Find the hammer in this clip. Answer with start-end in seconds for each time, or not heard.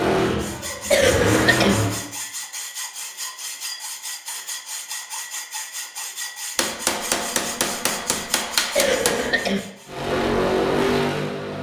6.5-9.3.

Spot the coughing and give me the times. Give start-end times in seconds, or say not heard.
0.9-1.8, 8.8-9.6.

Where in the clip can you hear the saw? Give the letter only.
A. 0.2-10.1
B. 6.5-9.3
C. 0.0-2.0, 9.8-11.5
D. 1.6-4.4
A.